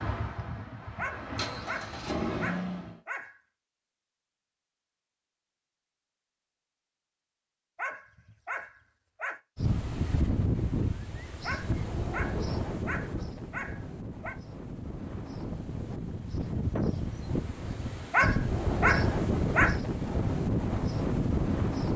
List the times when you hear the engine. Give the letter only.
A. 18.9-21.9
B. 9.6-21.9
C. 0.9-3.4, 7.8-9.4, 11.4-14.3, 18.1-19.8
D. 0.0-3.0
D.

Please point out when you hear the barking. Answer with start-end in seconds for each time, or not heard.
0.9-3.4, 7.8-9.4, 11.4-14.3, 18.1-19.8.